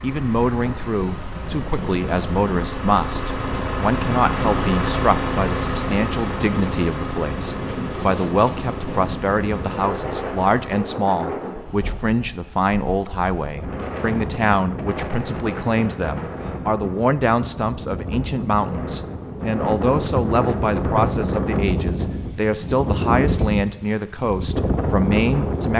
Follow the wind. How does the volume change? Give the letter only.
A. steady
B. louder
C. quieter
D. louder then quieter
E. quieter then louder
B.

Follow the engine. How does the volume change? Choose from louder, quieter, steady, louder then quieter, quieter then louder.
louder then quieter.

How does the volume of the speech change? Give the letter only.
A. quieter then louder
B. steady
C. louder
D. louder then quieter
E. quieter
B.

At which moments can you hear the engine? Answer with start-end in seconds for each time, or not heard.
0.0-10.9.